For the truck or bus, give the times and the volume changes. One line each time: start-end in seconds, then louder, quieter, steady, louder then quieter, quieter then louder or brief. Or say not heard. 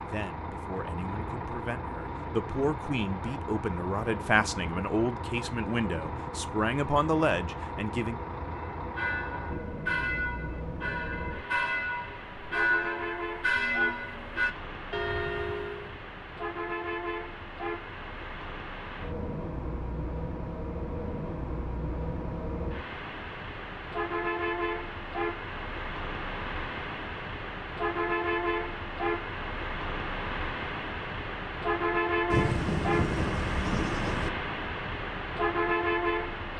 0.0-36.5 louder.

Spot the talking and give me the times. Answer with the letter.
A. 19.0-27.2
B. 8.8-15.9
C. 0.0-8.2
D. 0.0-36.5
C.